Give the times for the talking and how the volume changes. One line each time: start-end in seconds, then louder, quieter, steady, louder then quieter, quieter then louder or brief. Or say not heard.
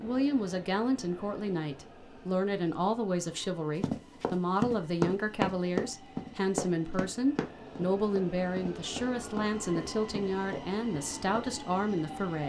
0.0-12.4 steady.